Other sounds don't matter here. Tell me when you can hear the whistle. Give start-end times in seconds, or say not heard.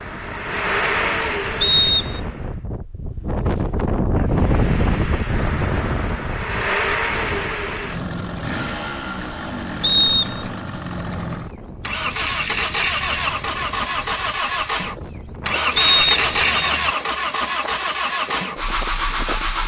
1.6-2.2, 9.8-10.6, 15.8-16.7.